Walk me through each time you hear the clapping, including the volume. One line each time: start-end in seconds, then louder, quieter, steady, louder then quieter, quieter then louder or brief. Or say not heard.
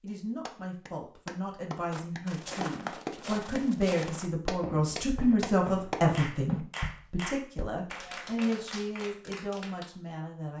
0.5-9.9 louder then quieter.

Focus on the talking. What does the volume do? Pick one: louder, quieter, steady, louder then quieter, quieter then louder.
louder then quieter.